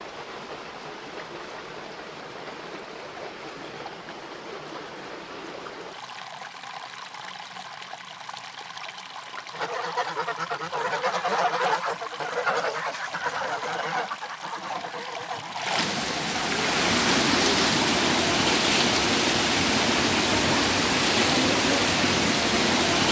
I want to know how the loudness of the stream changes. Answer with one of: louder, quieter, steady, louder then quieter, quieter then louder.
louder.